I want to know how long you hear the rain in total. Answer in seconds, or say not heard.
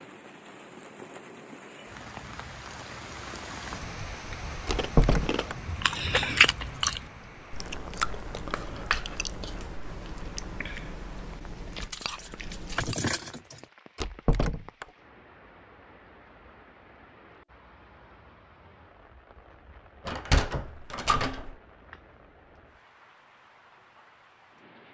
25 s.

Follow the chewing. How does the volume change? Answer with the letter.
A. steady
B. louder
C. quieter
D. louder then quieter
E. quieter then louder
C.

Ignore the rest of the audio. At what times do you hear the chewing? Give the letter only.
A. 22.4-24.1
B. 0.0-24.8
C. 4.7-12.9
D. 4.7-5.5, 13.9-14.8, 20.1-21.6
C.